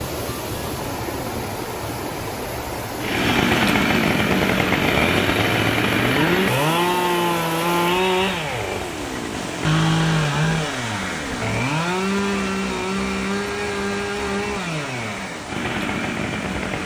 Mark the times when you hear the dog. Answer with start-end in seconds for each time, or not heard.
not heard.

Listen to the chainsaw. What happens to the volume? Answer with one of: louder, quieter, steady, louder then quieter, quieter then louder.
quieter.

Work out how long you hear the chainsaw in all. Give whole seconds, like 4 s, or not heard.
14 s.